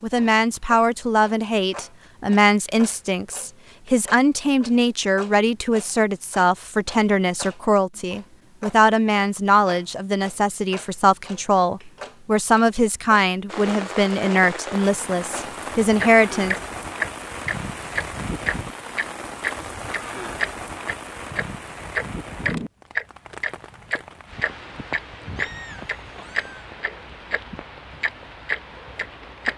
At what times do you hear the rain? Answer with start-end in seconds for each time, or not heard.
13.4-29.5.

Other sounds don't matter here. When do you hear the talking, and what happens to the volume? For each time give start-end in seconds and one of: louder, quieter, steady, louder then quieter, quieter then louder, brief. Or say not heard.
0.0-16.6 steady.